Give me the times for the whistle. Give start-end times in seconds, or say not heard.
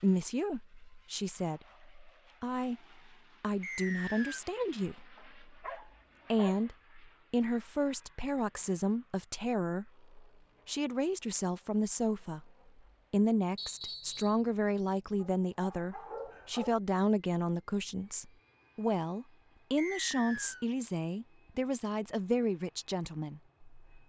3.6-4.4, 13.6-14.4, 19.8-20.6.